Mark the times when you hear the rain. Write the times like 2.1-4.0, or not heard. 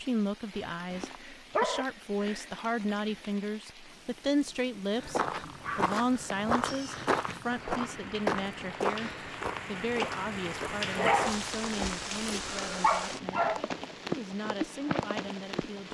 0.0-15.8.